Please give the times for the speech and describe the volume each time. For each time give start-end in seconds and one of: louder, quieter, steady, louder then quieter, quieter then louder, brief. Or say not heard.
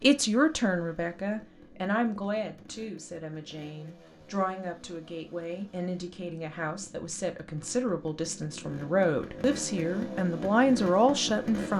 0.0-11.7 quieter then louder.